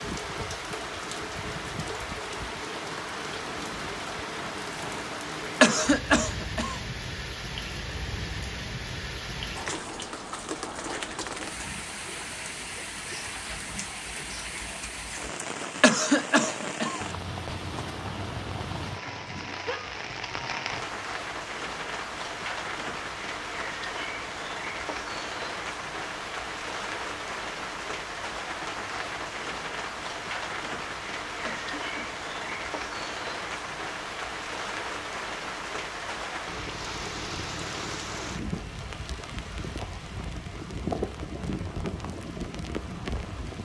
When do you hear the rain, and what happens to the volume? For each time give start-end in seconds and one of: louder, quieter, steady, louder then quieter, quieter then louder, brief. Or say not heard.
0.0-43.6 steady.